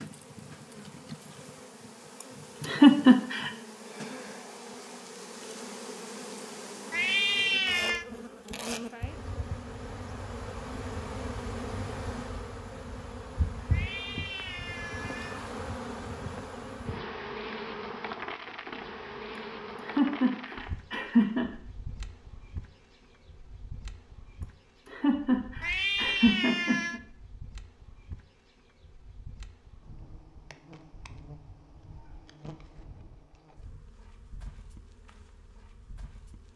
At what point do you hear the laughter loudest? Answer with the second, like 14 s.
3 s.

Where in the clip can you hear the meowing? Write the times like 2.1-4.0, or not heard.
6.9-8.1, 13.7-15.4, 25.6-27.0.